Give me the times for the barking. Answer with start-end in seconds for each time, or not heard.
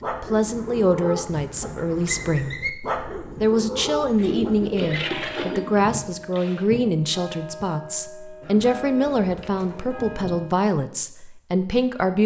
0.0-5.0.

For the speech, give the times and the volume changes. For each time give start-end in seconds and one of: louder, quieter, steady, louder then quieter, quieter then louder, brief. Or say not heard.
0.1-12.2 steady.